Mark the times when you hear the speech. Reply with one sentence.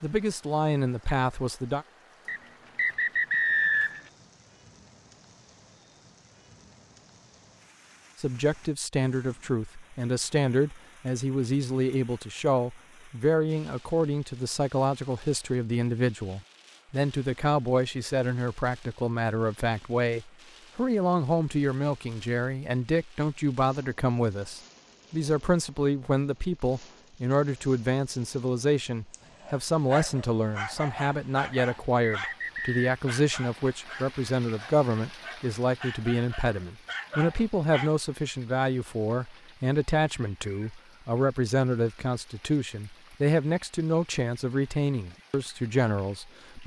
The speech can be heard from 0.0 to 1.9 s and from 8.2 to 46.6 s.